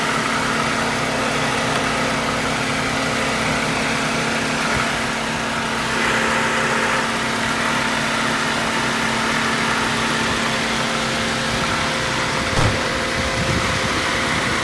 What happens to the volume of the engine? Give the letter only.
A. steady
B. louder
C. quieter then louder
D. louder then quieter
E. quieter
A.